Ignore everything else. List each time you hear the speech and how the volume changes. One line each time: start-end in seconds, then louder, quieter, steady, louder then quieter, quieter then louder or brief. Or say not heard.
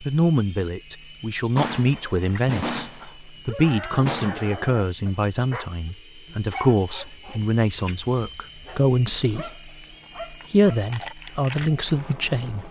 0.0-9.7 steady
10.3-12.6 brief.